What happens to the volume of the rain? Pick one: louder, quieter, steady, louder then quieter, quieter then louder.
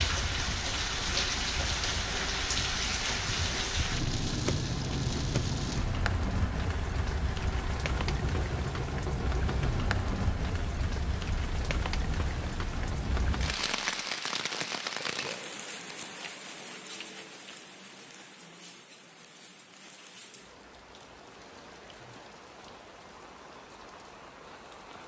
quieter.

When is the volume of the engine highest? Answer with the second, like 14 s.
9 s.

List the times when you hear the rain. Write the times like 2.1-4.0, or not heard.
0.0-25.0.